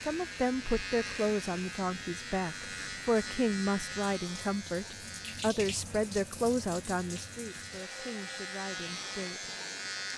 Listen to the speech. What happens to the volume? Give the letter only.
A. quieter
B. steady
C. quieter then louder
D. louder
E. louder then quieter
A.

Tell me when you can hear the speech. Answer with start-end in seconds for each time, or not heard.
0.0-9.5.